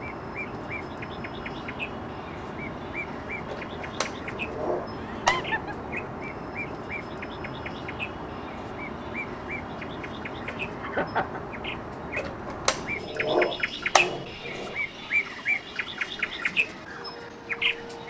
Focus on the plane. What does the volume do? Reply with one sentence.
The loudness of the plane goes down.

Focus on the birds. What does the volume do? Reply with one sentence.
The volume of the birds goes up.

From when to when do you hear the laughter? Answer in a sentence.
You can hear the laughter from 5.0 to 5.8 s and from 10.4 to 11.4 s.